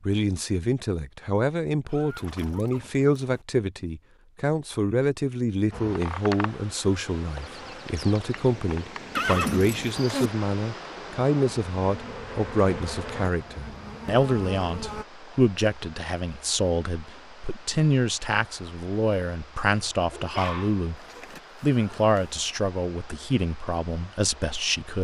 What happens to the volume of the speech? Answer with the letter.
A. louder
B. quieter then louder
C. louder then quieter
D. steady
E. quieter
D.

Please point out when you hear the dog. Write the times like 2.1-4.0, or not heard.
20.1-21.3.